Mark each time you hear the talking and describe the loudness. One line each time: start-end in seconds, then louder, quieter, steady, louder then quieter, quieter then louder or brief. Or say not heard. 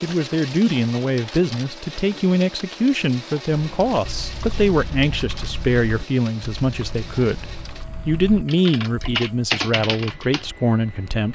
0.0-11.3 steady.